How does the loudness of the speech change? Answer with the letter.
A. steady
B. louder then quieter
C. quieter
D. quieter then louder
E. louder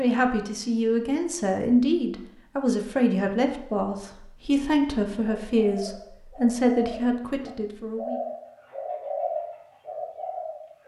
A.